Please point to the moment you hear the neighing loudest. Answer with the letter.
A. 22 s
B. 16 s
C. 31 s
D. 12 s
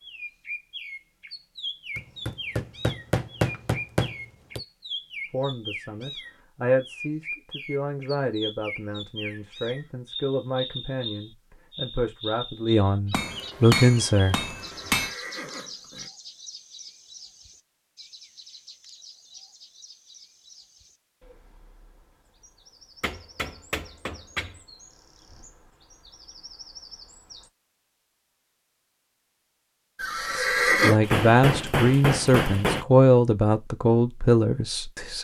C.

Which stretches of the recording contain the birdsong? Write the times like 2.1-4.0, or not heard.
0.0-27.5.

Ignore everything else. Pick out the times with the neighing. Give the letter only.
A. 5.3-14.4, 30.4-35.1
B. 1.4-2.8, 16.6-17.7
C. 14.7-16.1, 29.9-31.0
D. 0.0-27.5
C.